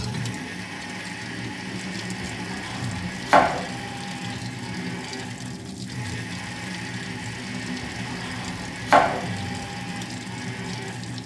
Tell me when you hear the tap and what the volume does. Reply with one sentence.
The tap can be heard from 0.0 to 11.2 s, at a steady volume.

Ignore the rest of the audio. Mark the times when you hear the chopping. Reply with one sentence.
The chopping can be heard from 2.2 to 3.6 s and from 7.8 to 9.7 s.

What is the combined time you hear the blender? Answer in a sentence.
The blender can be heard for 11 seconds in total.